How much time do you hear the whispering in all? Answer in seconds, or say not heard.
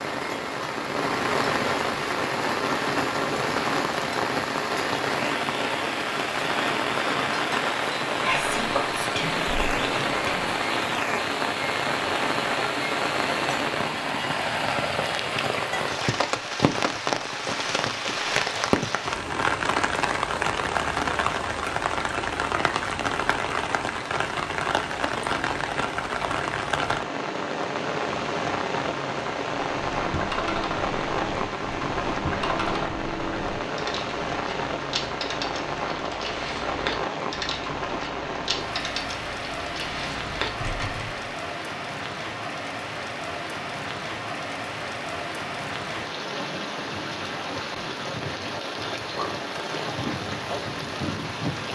2 s.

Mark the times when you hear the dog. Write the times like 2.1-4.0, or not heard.
not heard.